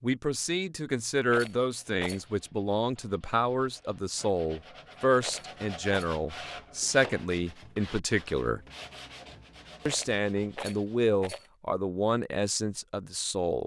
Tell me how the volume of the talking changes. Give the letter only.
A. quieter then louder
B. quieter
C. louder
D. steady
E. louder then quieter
D.